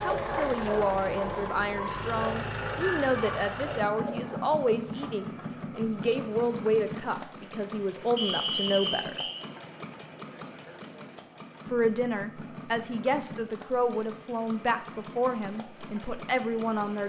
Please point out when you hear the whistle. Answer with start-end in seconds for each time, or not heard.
8.2-9.4.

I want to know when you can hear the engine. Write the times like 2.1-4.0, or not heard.
0.0-17.0.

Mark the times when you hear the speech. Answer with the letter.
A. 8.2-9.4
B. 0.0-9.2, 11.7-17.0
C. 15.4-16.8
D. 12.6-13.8
B.